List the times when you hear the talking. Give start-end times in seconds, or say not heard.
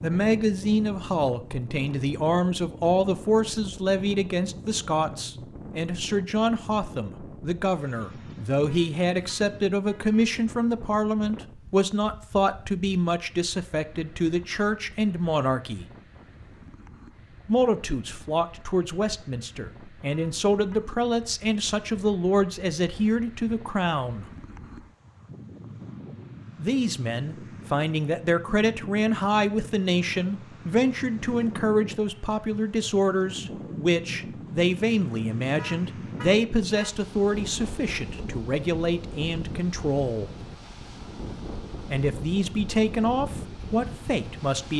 0.0-15.8, 17.4-24.2, 26.6-40.3, 41.9-44.7.